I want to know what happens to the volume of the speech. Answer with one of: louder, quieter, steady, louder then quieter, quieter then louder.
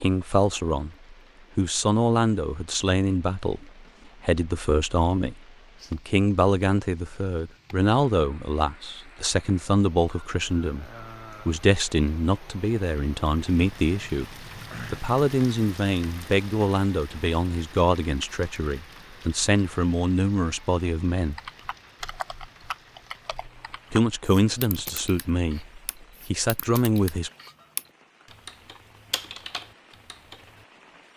steady.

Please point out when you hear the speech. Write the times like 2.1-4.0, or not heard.
0.0-21.4, 23.9-27.3.